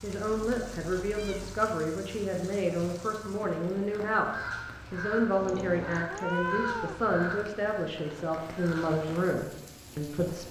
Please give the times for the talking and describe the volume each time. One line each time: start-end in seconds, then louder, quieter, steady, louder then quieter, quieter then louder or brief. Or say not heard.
0.0-10.4 steady.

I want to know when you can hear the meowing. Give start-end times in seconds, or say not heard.
0.5-1.6, 5.3-7.0.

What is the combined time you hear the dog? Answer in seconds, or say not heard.
not heard.